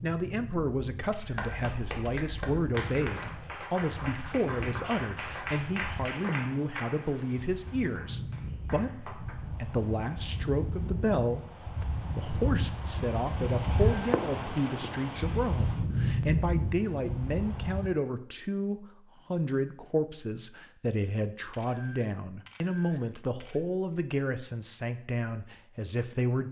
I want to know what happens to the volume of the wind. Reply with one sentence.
The loudness of the wind goes up.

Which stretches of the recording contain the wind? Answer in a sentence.
The wind can be heard from 0.0 to 17.9 s.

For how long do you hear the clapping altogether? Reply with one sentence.
The clapping can be heard for 8 seconds in total.